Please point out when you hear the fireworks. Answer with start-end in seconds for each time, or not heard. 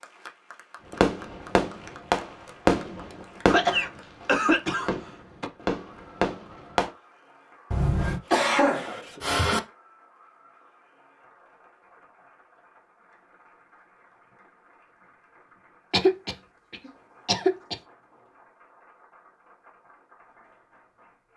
0.9-6.9.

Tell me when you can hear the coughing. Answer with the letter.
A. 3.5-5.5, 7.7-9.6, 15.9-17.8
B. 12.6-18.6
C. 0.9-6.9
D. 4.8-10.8
A.